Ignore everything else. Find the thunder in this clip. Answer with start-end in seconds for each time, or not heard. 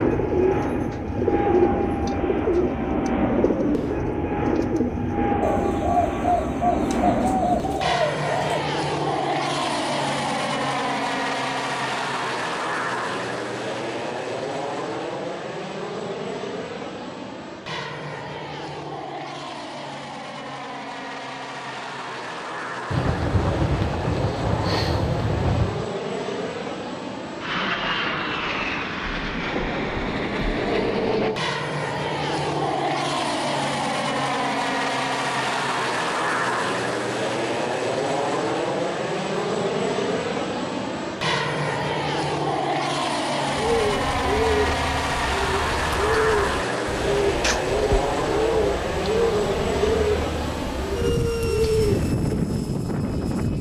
22.9-25.9.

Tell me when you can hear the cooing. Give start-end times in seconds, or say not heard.
0.0-8.7, 43.5-52.4.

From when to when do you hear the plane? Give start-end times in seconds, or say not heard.
0.0-53.5.